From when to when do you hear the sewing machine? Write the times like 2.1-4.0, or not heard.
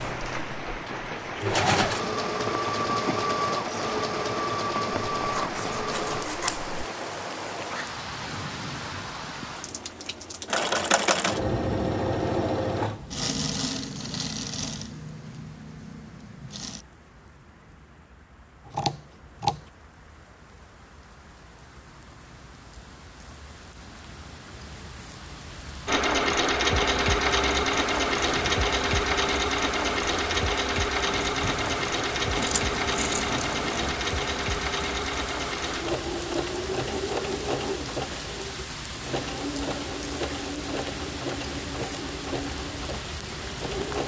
0.0-6.2, 10.4-16.9, 25.9-44.0.